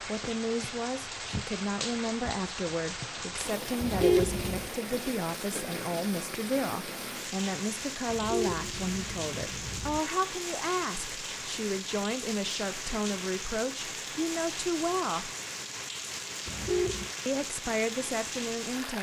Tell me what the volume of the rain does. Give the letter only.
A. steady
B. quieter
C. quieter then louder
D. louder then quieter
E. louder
A.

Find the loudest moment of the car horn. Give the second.
4 s.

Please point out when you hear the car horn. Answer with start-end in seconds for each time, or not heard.
3.8-4.7, 8.1-10.0, 16.4-17.1.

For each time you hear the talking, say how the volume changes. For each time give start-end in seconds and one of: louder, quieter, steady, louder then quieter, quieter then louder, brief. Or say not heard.
0.0-15.3 steady
17.2-18.9 brief.